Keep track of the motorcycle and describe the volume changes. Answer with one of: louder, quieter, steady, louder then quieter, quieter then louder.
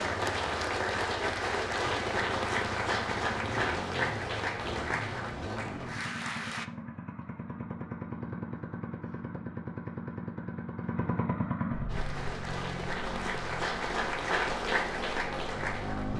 louder then quieter.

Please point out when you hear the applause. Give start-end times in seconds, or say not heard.
0.0-6.7, 11.8-16.1.